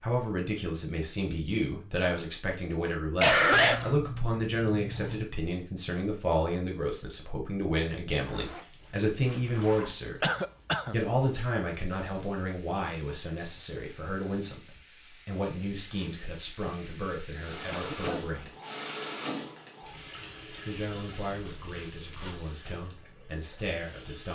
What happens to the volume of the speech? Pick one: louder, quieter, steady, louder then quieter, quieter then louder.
quieter.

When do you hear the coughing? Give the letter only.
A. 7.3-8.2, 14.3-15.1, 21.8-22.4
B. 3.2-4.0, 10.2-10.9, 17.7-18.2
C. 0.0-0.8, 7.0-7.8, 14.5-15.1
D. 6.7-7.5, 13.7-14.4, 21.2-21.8
B.